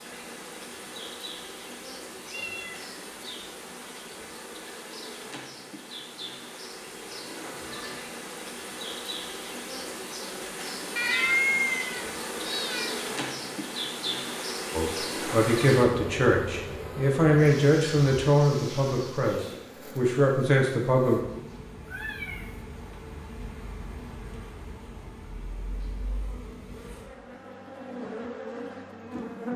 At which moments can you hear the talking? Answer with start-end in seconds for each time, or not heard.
14.8-21.2.